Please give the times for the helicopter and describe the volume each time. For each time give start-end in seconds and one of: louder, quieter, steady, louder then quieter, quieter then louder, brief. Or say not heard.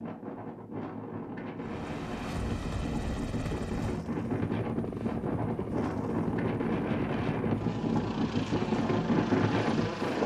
1.6-10.2 steady.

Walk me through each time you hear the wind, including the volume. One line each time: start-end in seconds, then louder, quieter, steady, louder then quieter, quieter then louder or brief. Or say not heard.
0.0-10.2 louder.